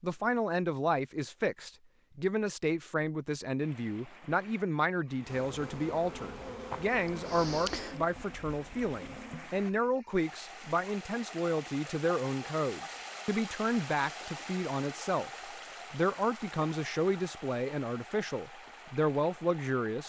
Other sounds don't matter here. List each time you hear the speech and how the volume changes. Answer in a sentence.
You can hear the speech from 0.0 to 20.0 s, at a steady volume.